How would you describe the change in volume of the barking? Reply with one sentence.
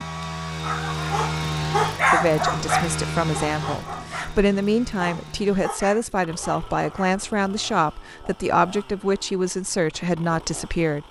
The volume of the barking goes down.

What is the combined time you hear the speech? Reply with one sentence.
The speech can be heard for 9 seconds in total.